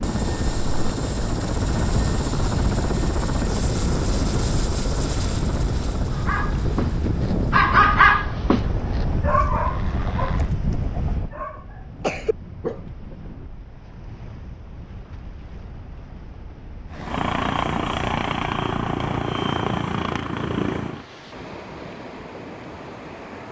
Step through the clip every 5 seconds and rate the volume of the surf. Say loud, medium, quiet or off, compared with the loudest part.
loud, loud, medium, quiet, medium.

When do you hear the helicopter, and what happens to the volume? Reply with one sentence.
You can hear the helicopter from 0.0 to 10.5 s, getting quieter; and from 16.9 to 21.1 s, at a steady volume.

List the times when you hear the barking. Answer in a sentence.
You can hear the barking from 6.1 to 13.2 s.